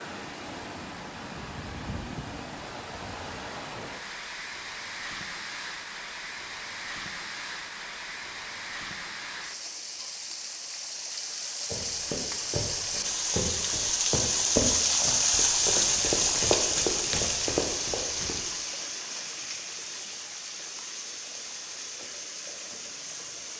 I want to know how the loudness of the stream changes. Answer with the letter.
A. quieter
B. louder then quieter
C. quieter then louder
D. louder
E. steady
B.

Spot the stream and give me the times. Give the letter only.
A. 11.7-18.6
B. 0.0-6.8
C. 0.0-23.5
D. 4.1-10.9
C.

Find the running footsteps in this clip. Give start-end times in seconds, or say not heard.
11.7-18.6.